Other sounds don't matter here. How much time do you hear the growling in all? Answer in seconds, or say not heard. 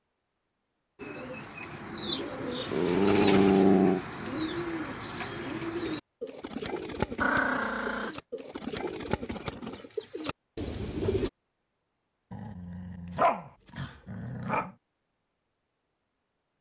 5 s.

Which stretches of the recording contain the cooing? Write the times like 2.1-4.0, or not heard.
0.9-11.3.